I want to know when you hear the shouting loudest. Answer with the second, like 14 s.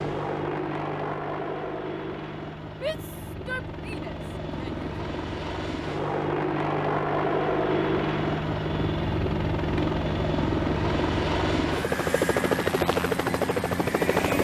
3 s.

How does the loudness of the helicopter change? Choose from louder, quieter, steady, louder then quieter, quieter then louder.
louder.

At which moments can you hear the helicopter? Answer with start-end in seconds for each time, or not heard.
0.0-14.4.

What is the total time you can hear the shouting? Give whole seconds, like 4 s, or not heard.
2 s.